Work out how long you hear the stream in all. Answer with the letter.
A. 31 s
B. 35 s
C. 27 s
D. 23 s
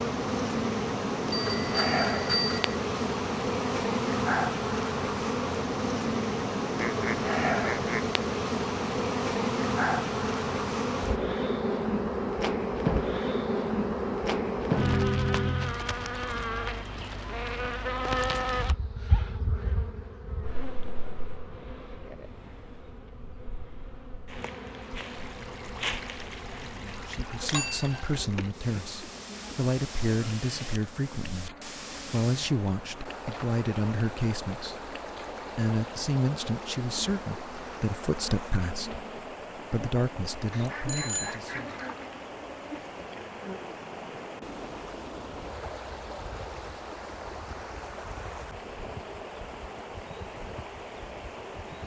C.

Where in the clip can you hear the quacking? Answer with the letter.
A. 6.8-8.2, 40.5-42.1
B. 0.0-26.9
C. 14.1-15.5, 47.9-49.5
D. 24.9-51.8
A.